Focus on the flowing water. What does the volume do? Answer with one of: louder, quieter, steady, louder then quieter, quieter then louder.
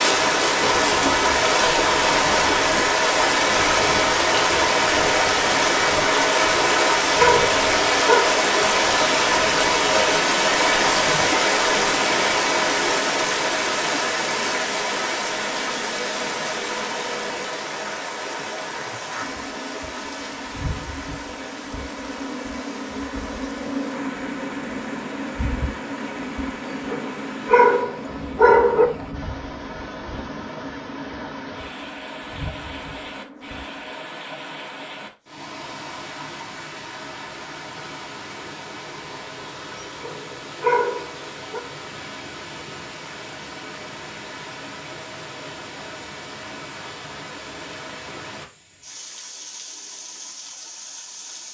quieter.